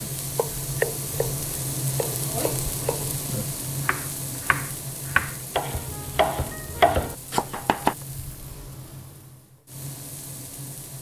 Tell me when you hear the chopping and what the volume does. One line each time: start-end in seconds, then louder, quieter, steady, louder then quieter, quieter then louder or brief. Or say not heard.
0.0-8.0 quieter then louder.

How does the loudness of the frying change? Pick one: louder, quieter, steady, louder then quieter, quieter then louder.
quieter.